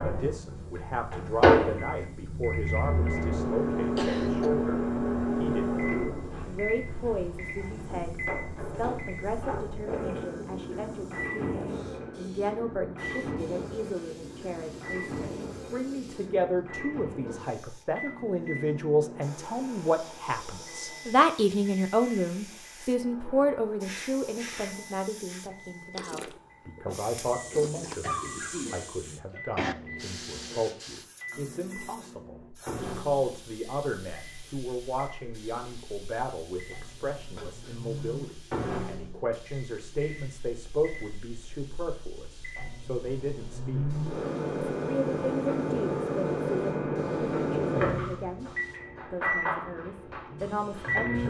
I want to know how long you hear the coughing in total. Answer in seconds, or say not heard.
3 s.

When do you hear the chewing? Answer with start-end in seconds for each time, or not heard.
25.5-28.1.